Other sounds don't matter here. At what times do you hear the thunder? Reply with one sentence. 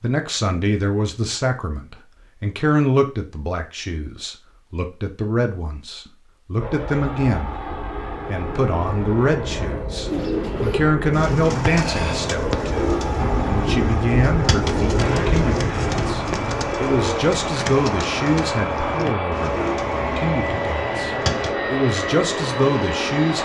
You can hear the thunder from 13.2 to 16.7 s.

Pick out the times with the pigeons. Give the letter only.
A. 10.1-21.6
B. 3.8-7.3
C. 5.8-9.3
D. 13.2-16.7
A.